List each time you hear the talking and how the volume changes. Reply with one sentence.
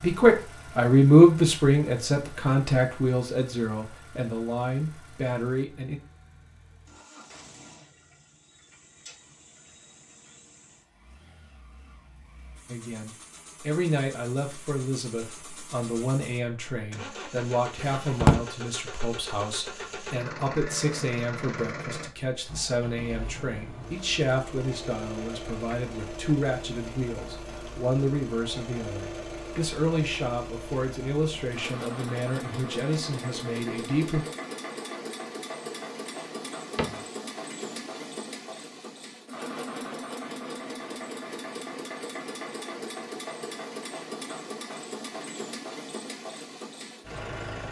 You can hear the talking from 0.0 to 6.0 s, getting quieter; and from 12.7 to 34.2 s, at a steady volume.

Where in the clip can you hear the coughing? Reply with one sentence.
The coughing can't be heard in this clip.